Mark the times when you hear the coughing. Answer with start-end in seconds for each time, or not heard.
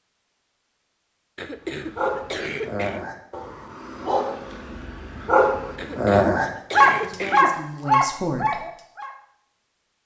1.4-3.0, 5.8-7.6.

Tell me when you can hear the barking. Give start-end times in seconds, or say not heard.
1.7-9.1.